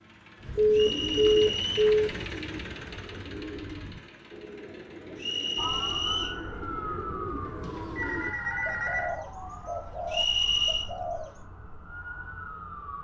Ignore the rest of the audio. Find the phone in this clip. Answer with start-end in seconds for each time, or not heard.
0.6-2.1, 8.0-9.2.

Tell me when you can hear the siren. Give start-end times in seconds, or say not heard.
5.5-13.0.